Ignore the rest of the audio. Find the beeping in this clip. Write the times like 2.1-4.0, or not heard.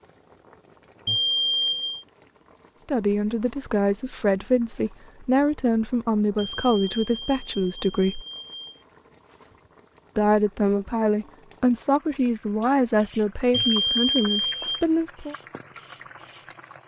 1.1-2.0, 6.3-8.8, 13.5-14.8.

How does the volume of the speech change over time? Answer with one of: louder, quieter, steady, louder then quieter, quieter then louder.
steady.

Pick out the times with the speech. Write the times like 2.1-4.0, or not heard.
2.9-8.2, 10.2-15.3.